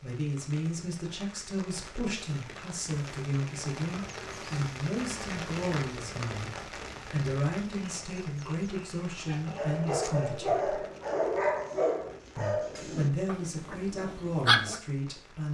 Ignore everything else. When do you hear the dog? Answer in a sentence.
The dog can be heard from 9.4 to 14.8 s.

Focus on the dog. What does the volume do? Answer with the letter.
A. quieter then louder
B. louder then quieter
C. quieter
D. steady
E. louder
C.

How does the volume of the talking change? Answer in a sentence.
The loudness of the talking stays about the same.